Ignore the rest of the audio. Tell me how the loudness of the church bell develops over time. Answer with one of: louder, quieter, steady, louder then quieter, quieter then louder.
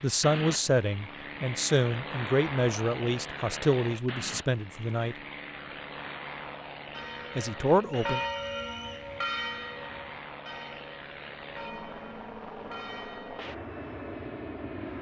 quieter.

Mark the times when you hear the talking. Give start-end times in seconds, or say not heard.
0.0-5.2, 7.3-8.2.